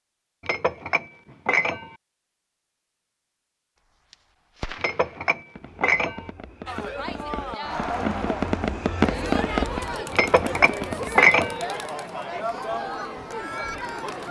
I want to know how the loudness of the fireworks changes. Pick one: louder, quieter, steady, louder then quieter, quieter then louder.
louder then quieter.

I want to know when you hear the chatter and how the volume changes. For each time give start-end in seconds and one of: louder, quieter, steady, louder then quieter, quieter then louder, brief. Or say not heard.
6.7-14.2 steady.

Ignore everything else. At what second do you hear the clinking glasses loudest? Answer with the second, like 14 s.
11 s.